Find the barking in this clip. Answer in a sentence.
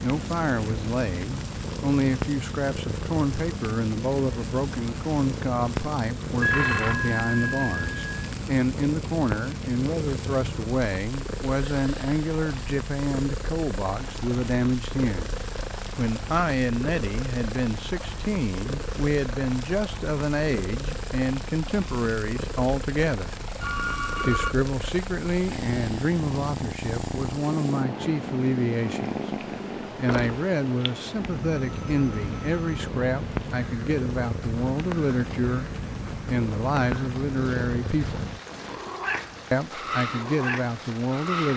The barking can't be heard in this clip.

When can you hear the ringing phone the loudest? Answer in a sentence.
The volume of the ringing phone peaks at 7 seconds.